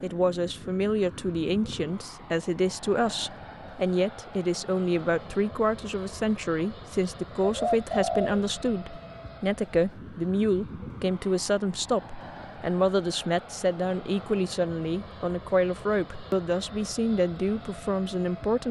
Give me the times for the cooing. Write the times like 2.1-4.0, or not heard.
7.4-8.3.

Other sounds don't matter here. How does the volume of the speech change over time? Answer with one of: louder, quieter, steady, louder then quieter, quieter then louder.
steady.